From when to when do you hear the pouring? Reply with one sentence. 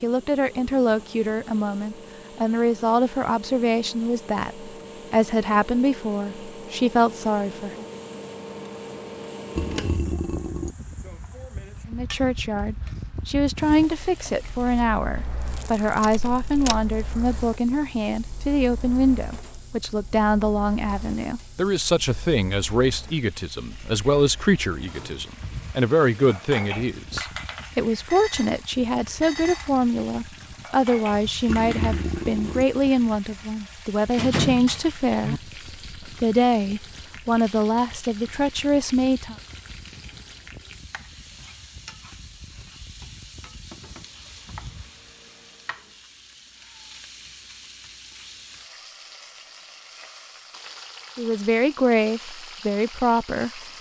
You can hear the pouring from 9.6 to 10.8 s and from 31.4 to 32.6 s.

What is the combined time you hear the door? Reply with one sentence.
You can hear the door for 2 seconds altogether.